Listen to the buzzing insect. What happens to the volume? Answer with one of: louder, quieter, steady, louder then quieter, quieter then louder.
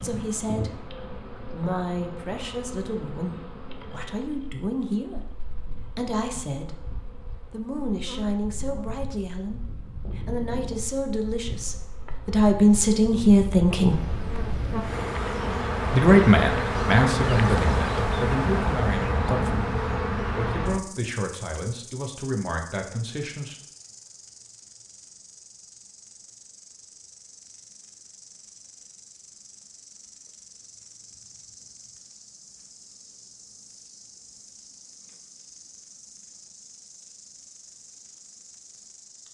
louder then quieter.